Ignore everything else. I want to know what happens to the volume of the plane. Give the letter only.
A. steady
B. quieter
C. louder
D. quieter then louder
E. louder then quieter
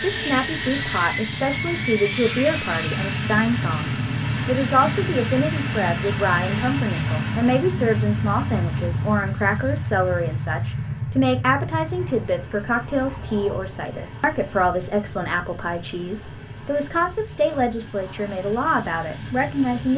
B.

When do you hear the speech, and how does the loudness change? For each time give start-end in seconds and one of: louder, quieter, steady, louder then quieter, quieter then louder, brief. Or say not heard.
0.0-19.9 steady.